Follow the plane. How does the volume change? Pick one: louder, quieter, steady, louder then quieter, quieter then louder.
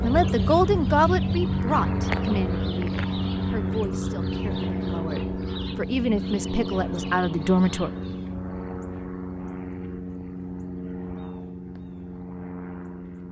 quieter.